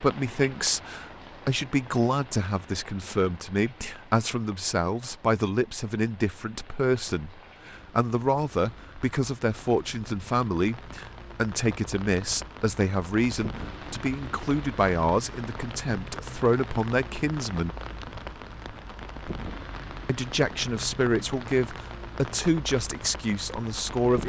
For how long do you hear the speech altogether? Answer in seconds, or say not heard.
22 s.